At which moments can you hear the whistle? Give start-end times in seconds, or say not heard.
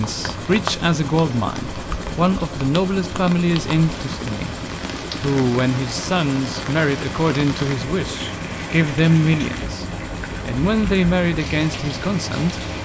not heard.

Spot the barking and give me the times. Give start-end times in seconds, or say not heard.
not heard.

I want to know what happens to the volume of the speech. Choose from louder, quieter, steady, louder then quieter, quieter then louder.
steady.